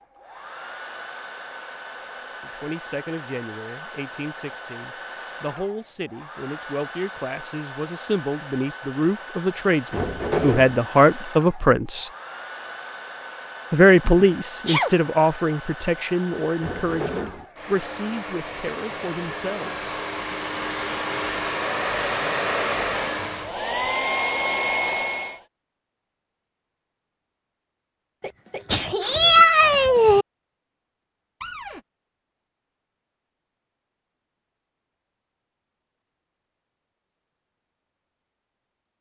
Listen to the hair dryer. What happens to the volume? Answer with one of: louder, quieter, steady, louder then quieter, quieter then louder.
louder.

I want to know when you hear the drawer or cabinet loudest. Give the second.
10 s.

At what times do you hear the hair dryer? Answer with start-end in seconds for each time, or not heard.
0.0-25.4.